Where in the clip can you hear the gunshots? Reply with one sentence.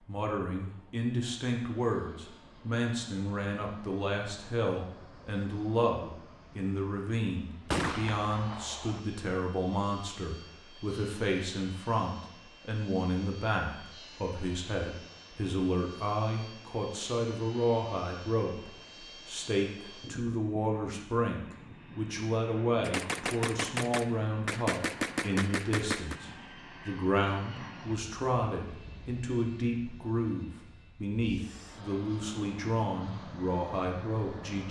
You can hear the gunshots from 7.7 to 9.0 s and from 22.8 to 26.1 s.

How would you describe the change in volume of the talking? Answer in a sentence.
The loudness of the talking stays about the same.